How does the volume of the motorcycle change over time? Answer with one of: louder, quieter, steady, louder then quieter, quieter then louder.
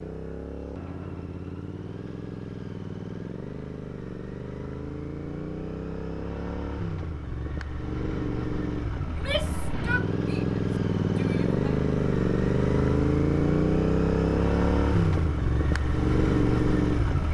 louder.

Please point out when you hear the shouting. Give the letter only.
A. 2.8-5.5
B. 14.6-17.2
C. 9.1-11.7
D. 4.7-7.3
C.